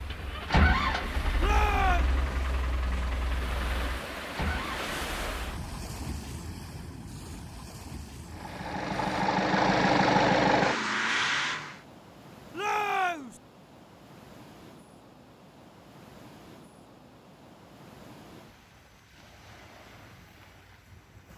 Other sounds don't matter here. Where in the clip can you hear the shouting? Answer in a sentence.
You can hear the shouting from 1.4 to 2.1 s and from 12.5 to 13.4 s.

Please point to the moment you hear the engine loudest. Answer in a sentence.
The volume of the engine peaks at 10 seconds.